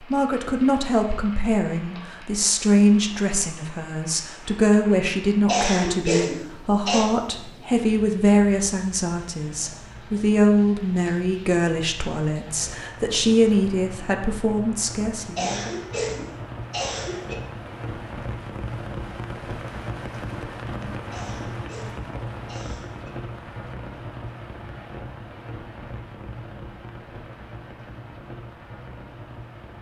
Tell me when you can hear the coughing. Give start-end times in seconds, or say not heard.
5.5-7.0, 15.3-17.4, 21.1-23.1.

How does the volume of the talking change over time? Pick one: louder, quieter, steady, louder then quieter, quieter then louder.
steady.